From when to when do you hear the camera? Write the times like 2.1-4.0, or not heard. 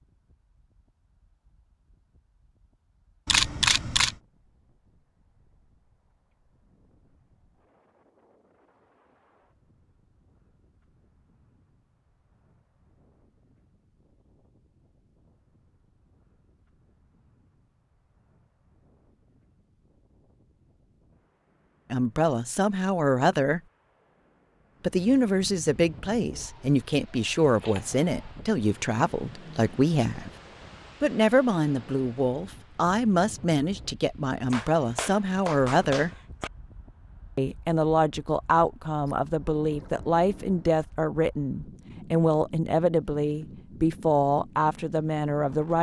3.2-4.2, 26.3-28.4, 39.0-40.7.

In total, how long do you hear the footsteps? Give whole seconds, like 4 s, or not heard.
not heard.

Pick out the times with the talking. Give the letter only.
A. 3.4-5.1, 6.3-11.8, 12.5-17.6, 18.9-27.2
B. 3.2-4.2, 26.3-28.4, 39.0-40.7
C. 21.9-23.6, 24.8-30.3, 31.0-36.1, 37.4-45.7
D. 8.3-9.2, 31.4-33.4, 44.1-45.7
C.